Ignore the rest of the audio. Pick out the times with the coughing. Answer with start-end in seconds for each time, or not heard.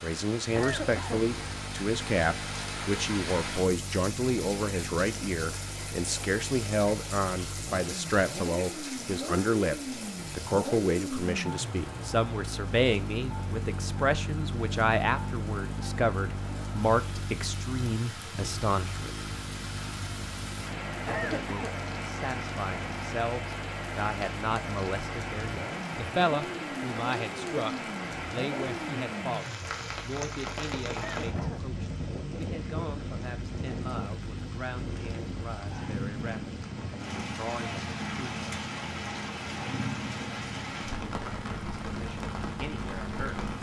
0.6-1.2, 21.1-21.8, 30.9-31.6.